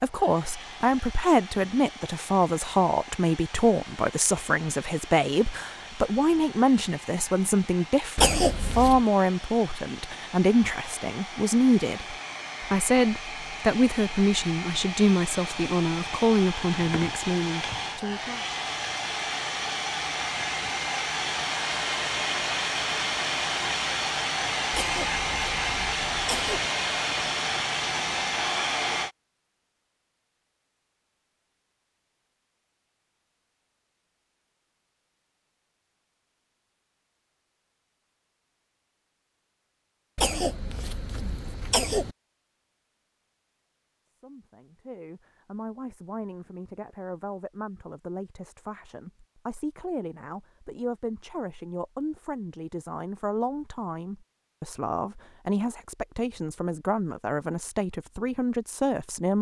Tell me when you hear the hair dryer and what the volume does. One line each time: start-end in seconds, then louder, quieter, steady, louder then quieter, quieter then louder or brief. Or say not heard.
0.0-29.1 louder.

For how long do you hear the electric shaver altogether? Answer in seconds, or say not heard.
not heard.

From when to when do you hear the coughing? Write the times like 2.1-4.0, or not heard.
8.2-9.0, 24.7-26.7, 40.1-42.1.